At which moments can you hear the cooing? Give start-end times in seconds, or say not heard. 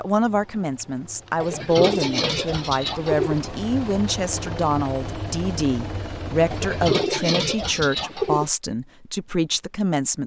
1.4-3.4, 6.5-8.5.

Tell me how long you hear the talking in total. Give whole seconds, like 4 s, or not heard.
10 s.